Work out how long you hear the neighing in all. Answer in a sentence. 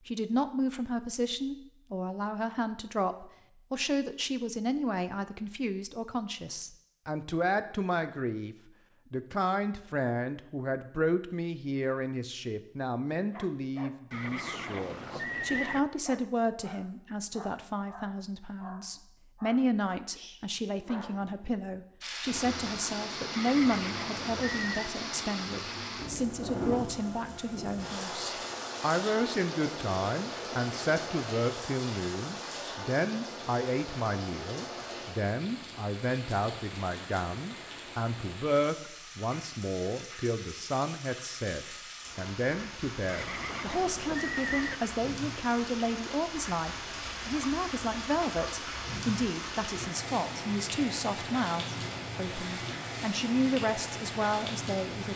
The neighing can be heard for 5 seconds in total.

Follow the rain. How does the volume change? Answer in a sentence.
The loudness of the rain goes down, then up.